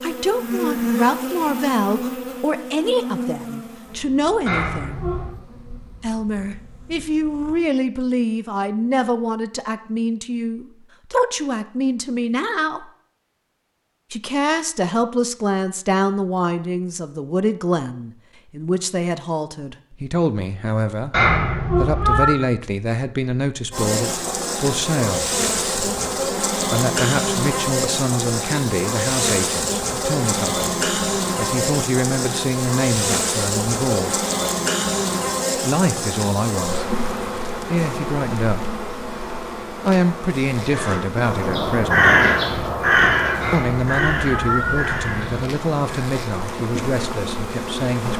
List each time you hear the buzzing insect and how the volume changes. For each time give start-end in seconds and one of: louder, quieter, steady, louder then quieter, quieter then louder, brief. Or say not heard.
0.0-7.7 quieter
23.7-48.1 quieter.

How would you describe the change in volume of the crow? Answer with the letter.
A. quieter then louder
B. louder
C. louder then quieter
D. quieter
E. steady
C.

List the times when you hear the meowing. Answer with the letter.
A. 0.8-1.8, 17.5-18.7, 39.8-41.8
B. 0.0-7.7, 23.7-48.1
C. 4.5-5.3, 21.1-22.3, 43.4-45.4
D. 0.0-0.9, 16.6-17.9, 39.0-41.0
C.